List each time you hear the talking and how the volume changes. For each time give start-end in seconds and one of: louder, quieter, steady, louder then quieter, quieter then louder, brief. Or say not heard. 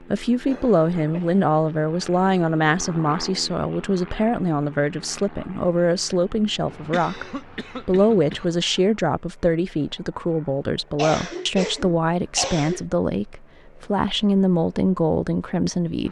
0.0-16.0 steady.